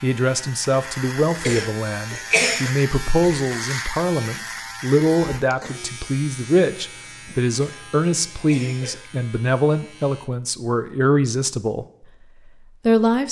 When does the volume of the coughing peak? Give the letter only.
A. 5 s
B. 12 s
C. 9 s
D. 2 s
D.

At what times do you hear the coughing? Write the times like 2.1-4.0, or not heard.
1.3-2.7, 7.6-9.1.